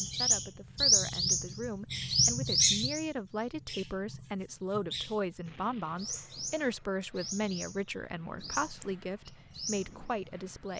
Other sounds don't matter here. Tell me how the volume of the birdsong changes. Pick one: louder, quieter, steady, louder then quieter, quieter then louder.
quieter.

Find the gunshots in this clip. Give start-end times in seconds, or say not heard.
not heard.